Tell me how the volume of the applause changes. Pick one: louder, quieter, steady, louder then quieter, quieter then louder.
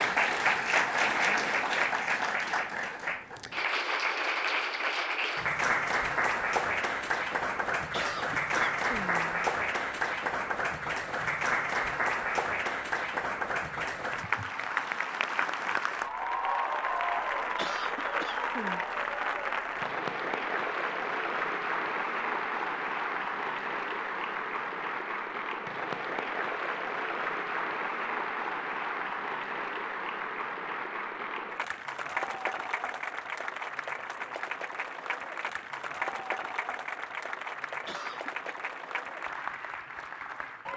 quieter.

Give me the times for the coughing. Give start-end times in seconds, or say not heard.
7.9-9.4, 17.6-18.9, 37.9-38.5.